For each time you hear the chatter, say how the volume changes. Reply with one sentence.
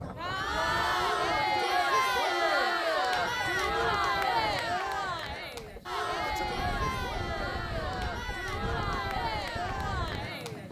The chatter can be heard from 0.0 to 10.6 s, getting quieter.